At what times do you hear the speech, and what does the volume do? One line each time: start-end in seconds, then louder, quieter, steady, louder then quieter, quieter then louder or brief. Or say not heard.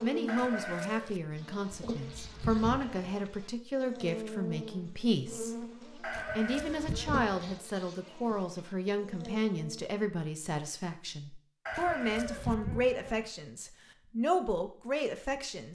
0.0-15.7 steady.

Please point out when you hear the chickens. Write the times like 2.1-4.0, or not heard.
0.2-1.2, 6.0-7.0, 11.7-12.6.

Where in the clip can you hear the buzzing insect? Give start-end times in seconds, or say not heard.
0.0-9.8.